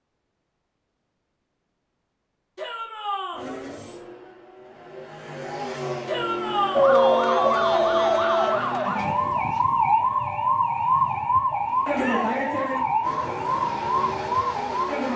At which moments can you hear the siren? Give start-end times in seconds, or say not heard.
6.7-15.1.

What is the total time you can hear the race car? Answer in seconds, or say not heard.
9 s.